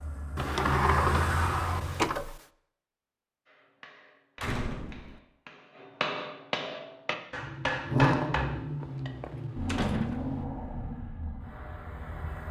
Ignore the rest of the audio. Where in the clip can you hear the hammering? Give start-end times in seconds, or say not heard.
3.5-9.1.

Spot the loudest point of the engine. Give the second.
8 s.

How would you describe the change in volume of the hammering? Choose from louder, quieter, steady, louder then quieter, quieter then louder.
louder.